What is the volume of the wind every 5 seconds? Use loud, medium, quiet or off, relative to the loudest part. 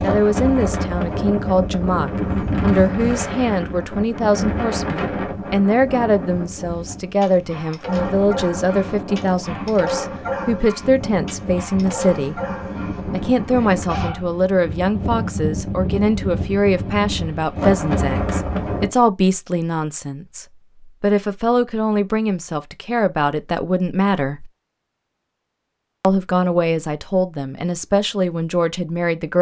loud, medium, medium, loud, off, off.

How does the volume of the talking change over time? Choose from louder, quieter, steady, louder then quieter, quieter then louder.
steady.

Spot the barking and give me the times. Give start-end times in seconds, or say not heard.
6.8-14.8.